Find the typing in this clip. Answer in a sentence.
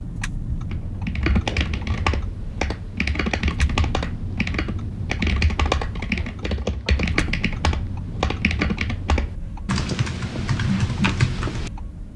You can hear the typing from 0.5 to 11.7 s.